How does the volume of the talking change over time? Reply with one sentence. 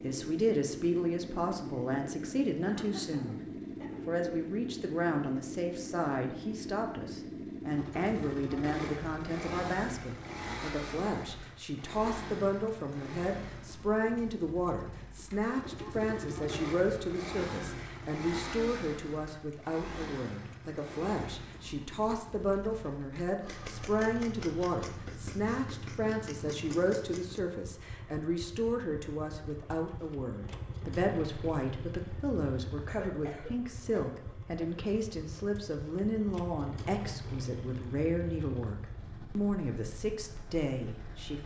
The loudness of the talking stays about the same.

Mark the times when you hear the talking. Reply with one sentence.
You can hear the talking from 0.0 to 3.4 s and from 4.0 to 41.4 s.